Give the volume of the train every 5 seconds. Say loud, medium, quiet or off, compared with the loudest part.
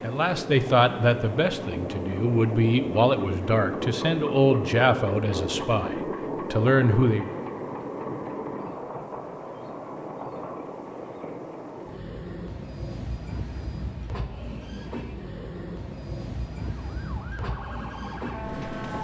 loud, loud, medium, medium.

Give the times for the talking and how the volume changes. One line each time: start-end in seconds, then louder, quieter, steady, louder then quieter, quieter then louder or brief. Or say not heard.
0.0-7.3 steady.